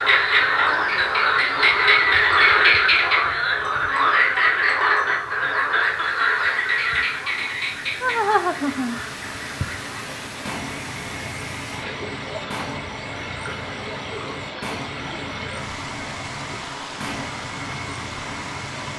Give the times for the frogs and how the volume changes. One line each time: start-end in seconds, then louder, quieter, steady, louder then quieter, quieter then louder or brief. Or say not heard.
0.0-18.9 quieter.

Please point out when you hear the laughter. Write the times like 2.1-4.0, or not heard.
8.0-9.0.